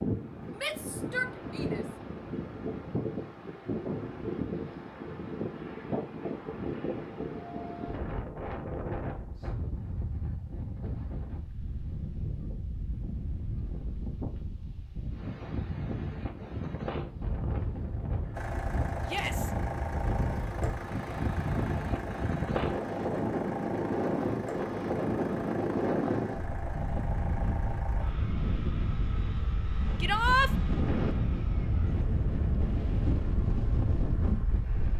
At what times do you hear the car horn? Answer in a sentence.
You can't hear the car horn here.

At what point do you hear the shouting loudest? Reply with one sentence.
The loudest moment of the shouting is at 30 seconds.